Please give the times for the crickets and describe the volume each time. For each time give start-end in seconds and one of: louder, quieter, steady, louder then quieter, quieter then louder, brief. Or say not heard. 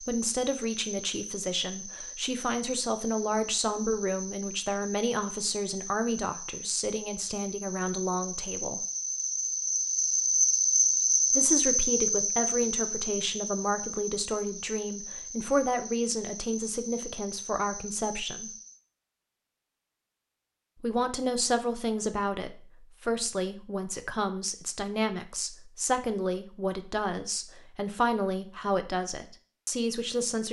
0.0-18.8 louder then quieter.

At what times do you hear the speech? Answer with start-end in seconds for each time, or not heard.
0.0-8.8, 11.3-18.5, 20.8-30.4.